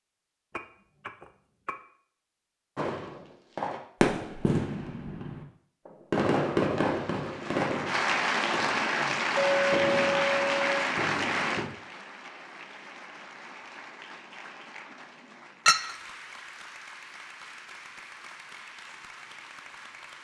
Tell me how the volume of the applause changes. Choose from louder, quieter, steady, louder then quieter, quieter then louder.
quieter.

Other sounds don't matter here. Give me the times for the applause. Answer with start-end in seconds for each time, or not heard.
7.2-20.2.